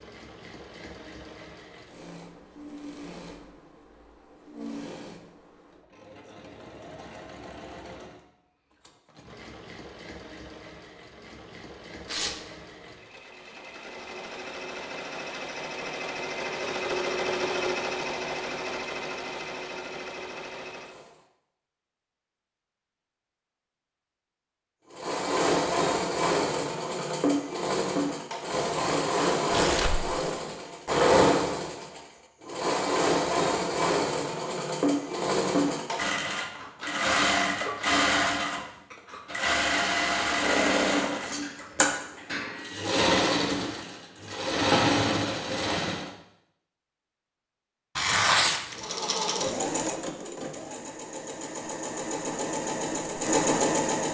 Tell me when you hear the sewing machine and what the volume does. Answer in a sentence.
The sewing machine can be heard from 0.0 to 21.2 s, getting louder; from 24.9 to 46.1 s, at a steady volume; and from 48.7 to 54.0 s, getting quieter then louder.